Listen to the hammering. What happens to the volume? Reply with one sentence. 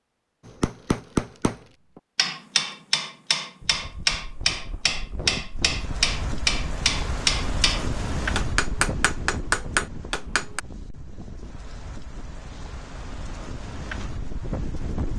The loudness of the hammering stays about the same.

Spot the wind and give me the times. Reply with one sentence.
The wind can be heard from 3.6 to 15.1 s.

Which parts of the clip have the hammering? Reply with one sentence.
The hammering can be heard from 0.5 to 10.6 s.